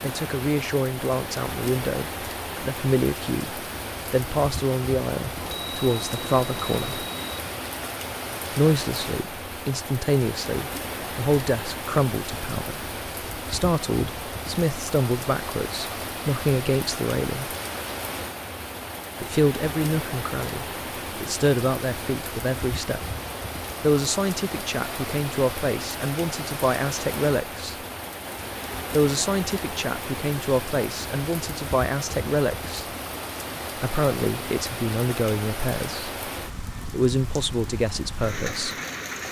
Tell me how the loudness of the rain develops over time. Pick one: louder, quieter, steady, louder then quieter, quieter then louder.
steady.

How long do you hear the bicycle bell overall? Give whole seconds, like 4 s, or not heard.
2 s.